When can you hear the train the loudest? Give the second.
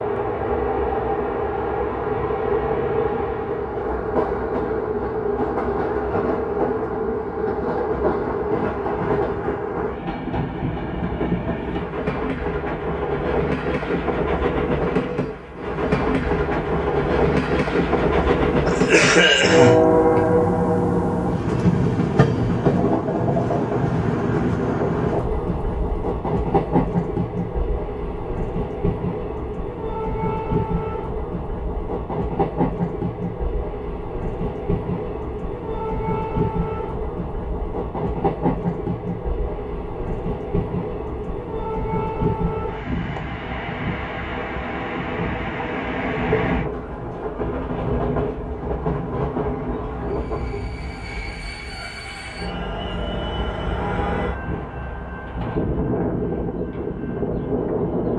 20 s.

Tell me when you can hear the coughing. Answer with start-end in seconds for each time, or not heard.
18.6-19.9.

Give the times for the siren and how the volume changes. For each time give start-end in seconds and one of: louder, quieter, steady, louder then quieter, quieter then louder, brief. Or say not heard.
not heard.